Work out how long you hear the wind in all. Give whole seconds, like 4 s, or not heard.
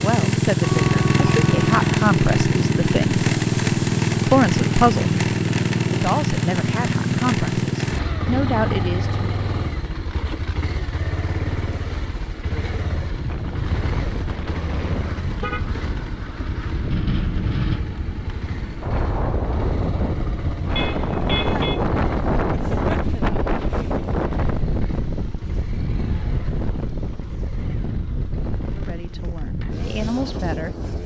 18 s.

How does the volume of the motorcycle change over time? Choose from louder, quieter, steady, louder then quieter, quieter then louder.
quieter.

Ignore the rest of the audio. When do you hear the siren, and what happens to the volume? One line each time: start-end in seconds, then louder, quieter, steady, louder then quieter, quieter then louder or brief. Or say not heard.
not heard.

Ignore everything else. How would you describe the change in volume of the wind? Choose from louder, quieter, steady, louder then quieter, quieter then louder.
louder then quieter.